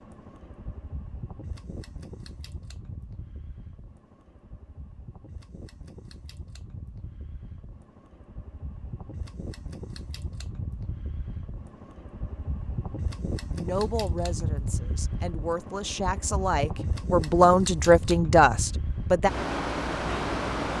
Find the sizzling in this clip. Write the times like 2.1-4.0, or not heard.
not heard.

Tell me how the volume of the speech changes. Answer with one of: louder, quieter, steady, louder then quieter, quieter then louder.
louder.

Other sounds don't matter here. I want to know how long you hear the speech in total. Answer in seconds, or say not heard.
6 s.